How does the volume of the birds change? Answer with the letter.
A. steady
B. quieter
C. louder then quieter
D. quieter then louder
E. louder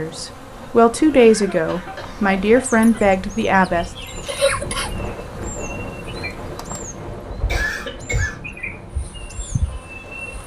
C.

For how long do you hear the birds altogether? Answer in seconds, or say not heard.
8 s.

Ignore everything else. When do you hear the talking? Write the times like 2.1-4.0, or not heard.
0.0-3.9.